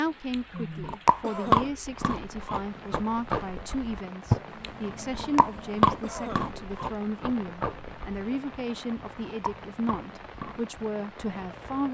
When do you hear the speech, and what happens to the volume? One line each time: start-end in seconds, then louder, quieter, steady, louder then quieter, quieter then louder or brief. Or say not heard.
0.0-11.8 steady.